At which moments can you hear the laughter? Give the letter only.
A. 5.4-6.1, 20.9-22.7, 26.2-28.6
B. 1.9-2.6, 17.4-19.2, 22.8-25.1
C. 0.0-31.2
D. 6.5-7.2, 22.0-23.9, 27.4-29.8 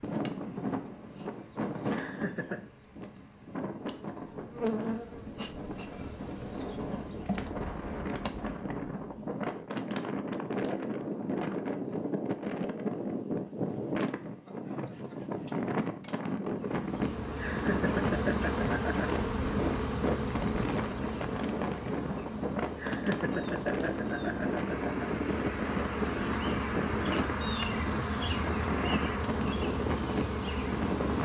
B.